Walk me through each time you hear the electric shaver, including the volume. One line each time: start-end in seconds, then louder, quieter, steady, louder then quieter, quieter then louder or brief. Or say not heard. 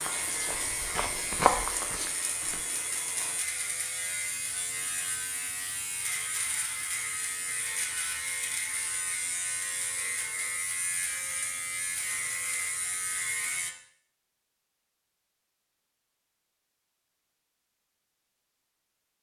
0.0-13.8 steady.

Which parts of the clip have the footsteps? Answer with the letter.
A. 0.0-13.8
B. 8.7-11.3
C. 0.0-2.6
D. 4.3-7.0
C.